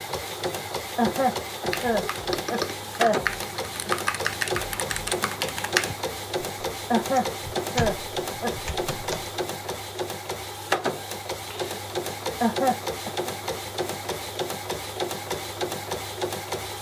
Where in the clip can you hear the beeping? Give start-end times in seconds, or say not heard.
not heard.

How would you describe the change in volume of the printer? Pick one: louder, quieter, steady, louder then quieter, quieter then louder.
steady.